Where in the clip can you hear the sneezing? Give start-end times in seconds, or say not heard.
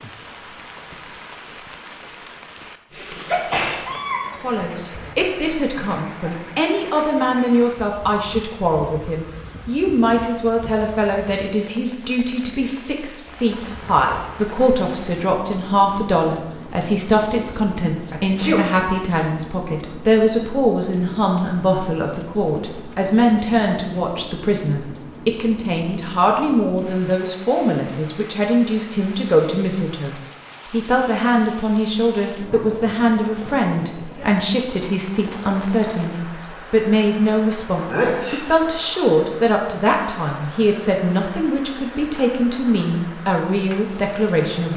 3.2-5.1, 18.1-18.6, 37.9-38.5.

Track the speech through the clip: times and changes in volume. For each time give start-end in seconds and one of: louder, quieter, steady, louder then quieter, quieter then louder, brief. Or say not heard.
4.4-44.7 steady.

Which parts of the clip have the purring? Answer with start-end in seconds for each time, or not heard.
not heard.